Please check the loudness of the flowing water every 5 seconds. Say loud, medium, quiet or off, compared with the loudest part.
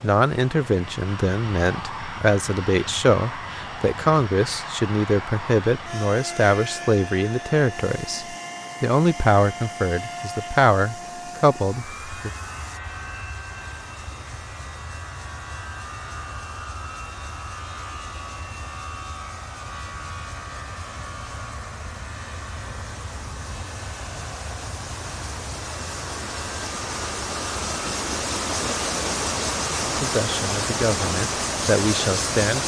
quiet, quiet, quiet, quiet, quiet, loud, loud.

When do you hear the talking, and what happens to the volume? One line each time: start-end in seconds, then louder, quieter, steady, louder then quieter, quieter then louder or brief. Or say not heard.
0.0-12.3 steady
29.8-32.6 brief.